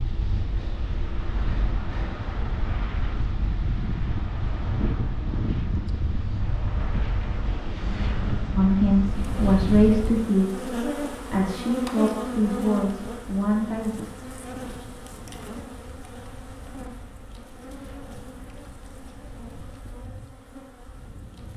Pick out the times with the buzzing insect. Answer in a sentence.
The buzzing insect can be heard from 9.1 to 21.5 s.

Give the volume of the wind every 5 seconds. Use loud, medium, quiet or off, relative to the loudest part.
loud, loud, quiet, quiet, quiet.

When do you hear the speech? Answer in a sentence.
You can hear the speech from 8.6 to 13.9 s.